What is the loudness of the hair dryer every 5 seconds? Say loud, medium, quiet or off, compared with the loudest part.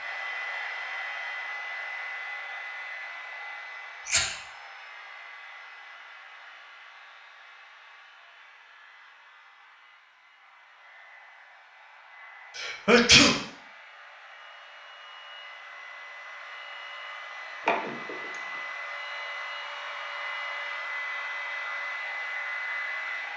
loud, quiet, quiet, medium, loud.